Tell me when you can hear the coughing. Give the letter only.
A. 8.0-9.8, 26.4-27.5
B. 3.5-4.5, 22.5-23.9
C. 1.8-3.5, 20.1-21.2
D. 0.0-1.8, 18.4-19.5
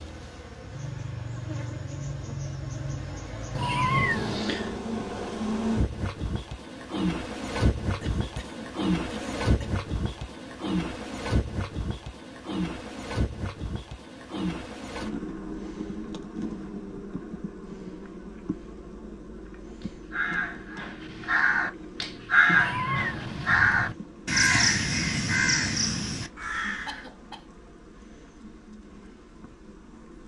A.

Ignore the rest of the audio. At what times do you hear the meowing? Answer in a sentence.
The meowing can be heard from 3.5 to 4.5 s and from 22.5 to 23.9 s.